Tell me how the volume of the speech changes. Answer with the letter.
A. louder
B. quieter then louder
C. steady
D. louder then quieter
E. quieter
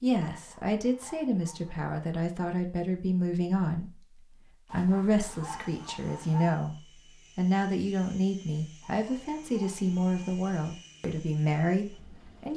C.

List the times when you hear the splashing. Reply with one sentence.
The splashing can't be heard in this clip.